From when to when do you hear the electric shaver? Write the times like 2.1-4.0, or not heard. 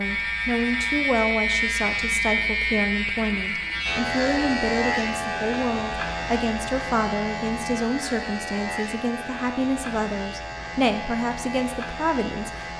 0.0-12.7.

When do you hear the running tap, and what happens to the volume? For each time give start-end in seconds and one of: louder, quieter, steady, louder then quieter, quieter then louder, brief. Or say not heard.
not heard.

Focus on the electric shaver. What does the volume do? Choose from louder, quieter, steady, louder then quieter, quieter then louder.
quieter.